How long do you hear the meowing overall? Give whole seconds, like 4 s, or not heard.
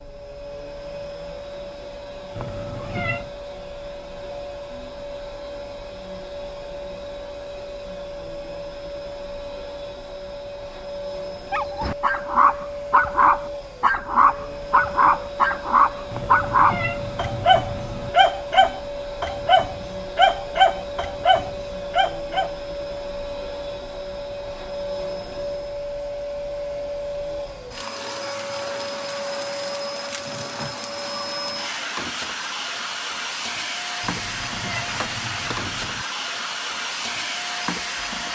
5 s.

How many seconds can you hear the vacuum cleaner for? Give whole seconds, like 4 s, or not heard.
38 s.